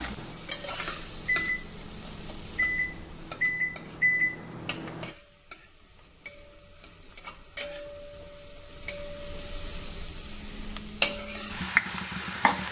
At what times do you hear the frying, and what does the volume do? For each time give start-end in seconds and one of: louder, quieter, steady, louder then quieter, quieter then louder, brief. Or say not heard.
0.0-12.6 quieter then louder.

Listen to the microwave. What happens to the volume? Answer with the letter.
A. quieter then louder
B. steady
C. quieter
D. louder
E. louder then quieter
D.